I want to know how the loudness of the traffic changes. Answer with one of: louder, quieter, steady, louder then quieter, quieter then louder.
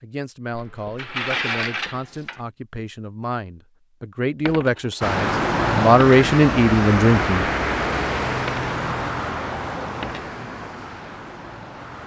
quieter.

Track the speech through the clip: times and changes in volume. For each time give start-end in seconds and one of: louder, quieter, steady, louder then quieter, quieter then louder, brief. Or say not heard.
0.0-7.5 louder.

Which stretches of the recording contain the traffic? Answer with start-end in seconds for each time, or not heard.
5.0-12.0.